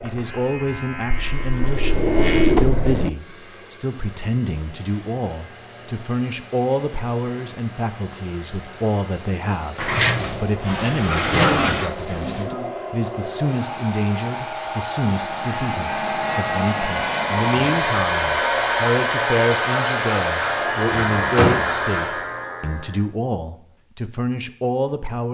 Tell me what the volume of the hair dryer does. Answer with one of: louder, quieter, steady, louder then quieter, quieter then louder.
louder.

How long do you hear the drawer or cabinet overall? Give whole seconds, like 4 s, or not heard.
5 s.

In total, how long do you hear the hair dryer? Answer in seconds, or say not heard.
19 s.